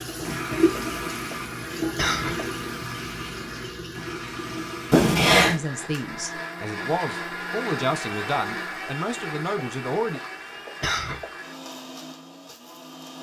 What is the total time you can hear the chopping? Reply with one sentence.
You can't hear the chopping here.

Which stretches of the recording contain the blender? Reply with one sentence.
The blender can be heard from 0.1 to 13.1 s.